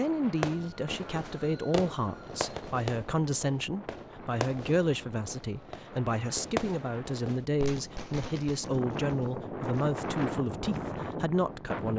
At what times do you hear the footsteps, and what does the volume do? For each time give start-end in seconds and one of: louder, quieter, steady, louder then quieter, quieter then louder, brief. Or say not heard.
not heard.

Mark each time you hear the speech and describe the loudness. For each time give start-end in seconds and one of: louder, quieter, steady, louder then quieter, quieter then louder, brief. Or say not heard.
0.0-11.9 steady.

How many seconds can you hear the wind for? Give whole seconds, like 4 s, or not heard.
12 s.